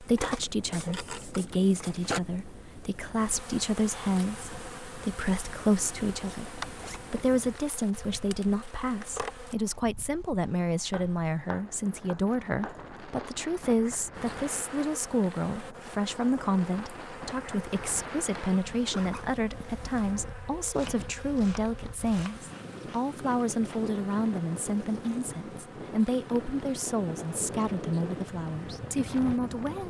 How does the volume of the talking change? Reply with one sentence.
The loudness of the talking stays about the same.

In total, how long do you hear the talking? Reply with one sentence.
You can hear the talking for 30 seconds altogether.